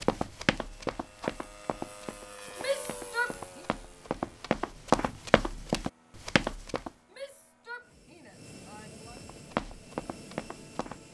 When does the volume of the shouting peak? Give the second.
3 s.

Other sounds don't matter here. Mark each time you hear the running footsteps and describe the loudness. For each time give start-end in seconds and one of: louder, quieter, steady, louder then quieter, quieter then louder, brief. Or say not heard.
0.0-6.9 quieter then louder
9.2-11.0 brief.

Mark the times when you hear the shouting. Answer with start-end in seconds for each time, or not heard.
2.5-3.6, 7.1-9.2.